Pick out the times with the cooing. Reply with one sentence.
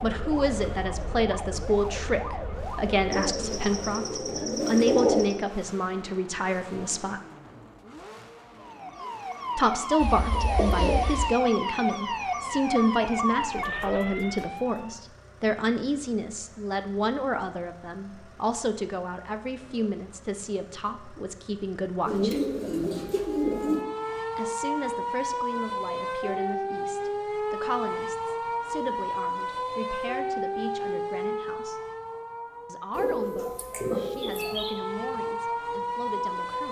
You can hear the cooing from 3.1 to 5.5 s, from 10.0 to 11.2 s, from 22.1 to 23.9 s and from 32.9 to 34.8 s.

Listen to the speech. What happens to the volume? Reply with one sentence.
The volume of the speech goes down.